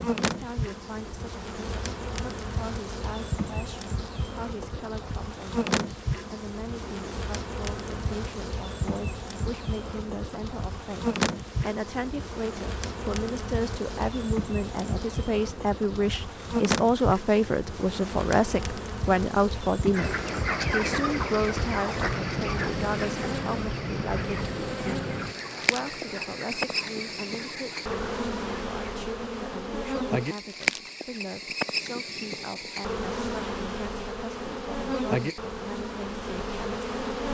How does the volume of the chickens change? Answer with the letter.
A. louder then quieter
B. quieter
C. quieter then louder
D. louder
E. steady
B.